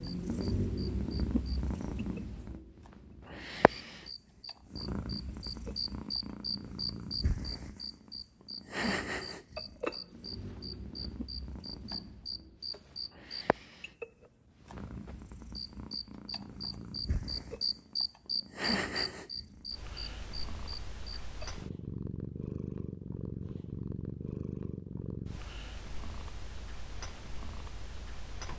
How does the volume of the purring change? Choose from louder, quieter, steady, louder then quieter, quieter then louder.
quieter then louder.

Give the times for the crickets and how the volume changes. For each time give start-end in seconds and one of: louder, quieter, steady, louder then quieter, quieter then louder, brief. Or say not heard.
0.0-21.6 louder.